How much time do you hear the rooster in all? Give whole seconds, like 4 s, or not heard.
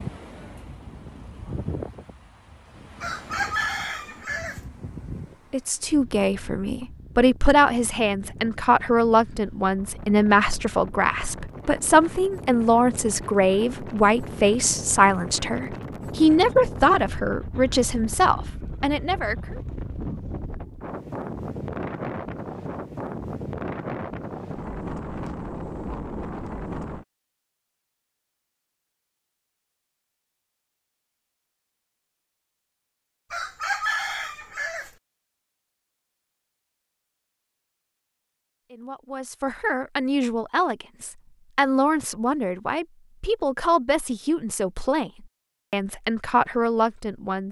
3 s.